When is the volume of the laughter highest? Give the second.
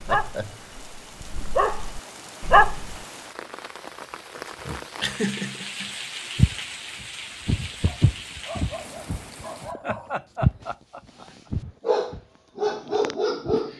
5 s.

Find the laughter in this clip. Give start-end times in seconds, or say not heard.
0.1-0.7, 5.0-5.9, 9.8-11.5.